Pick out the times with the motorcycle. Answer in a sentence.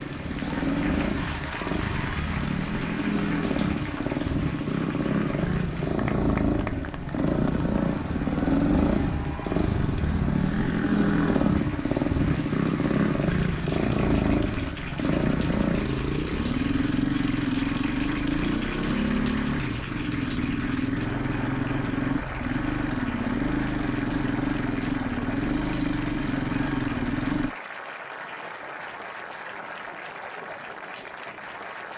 The motorcycle can be heard from 0.0 to 27.5 s.